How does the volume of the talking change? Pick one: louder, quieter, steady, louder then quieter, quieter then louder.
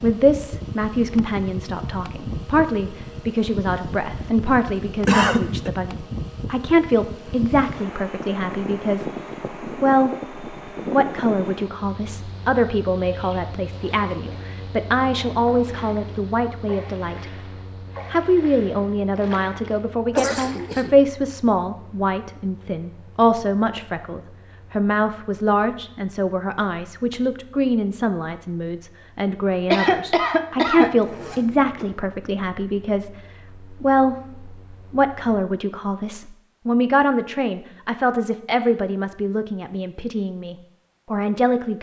steady.